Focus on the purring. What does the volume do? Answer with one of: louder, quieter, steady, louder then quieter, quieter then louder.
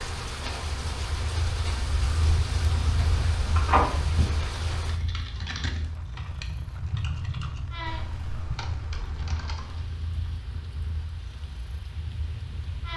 quieter.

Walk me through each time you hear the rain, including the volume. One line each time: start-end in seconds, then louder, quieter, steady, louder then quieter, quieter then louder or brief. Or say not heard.
0.0-12.9 quieter.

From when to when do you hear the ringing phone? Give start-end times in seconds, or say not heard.
3.5-4.2.